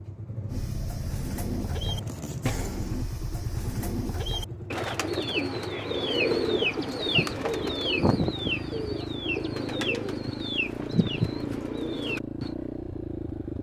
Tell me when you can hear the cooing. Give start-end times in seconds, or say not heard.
0.5-12.6.